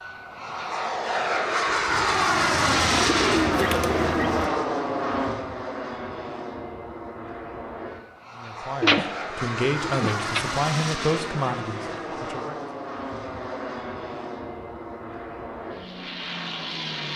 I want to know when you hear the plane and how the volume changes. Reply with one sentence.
You can hear the plane from 0.0 to 17.1 s, getting quieter.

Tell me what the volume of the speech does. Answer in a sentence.
The volume of the speech goes up, then down.